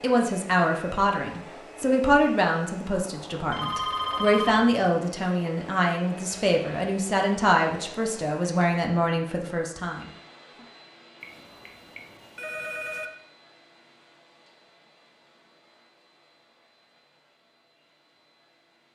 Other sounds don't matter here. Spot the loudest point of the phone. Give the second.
4 s.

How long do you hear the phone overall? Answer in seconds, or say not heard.
3 s.